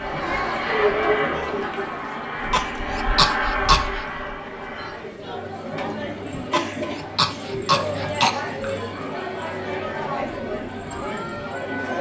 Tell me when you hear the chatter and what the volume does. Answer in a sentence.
You can hear the chatter from 0.0 to 11.9 s, getting quieter then louder.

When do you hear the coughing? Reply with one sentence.
You can hear the coughing from 2.5 to 4.0 s and from 6.5 to 8.4 s.